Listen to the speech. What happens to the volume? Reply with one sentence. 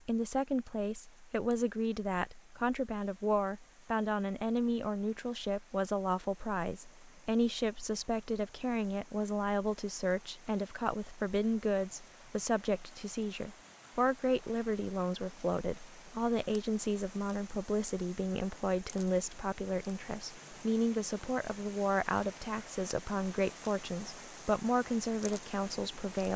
The loudness of the speech stays about the same.